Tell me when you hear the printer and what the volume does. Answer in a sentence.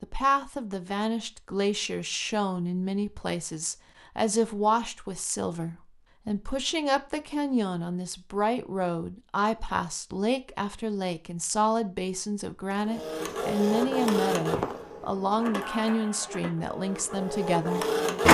The printer can be heard from 12.9 to 18.2 s, getting quieter then louder.